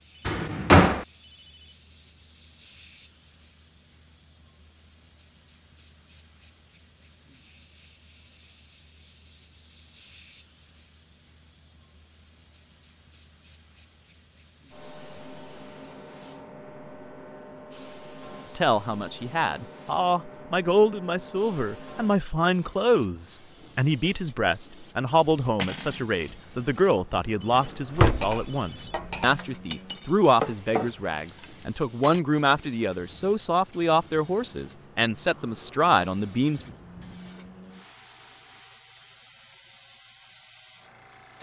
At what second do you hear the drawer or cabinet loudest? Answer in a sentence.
The volume of the drawer or cabinet peaks at 1 second.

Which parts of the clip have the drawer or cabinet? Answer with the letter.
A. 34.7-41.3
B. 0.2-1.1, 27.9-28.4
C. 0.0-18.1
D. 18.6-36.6
B.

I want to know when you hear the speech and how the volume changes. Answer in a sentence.
You can hear the speech from 18.6 to 36.6 s, at a steady volume.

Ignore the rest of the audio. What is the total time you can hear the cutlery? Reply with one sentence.
You can hear the cutlery for 7 seconds altogether.